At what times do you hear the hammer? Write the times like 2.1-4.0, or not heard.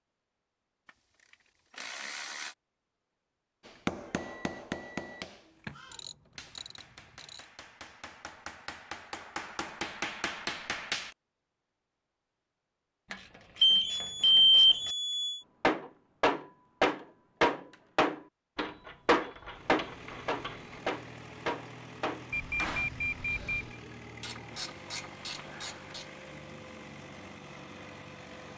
3.6-11.2, 15.6-22.9.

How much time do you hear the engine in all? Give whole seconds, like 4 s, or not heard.
9 s.